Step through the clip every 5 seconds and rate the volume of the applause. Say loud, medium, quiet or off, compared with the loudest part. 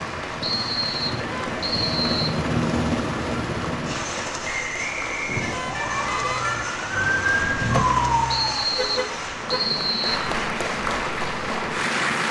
medium, medium, loud.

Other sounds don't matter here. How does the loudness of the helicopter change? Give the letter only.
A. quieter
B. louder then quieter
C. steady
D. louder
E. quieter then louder
A.